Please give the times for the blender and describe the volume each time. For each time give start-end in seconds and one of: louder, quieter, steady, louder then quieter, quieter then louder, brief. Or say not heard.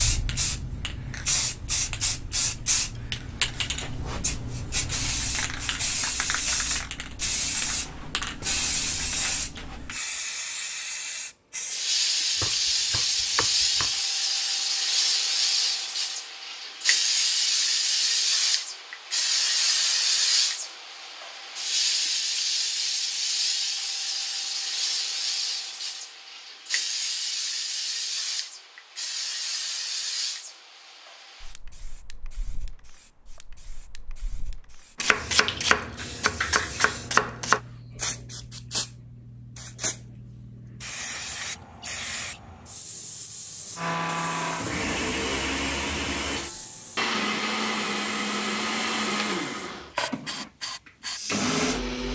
43.8-52.0 steady.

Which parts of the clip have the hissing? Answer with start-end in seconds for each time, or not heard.
0.0-51.8.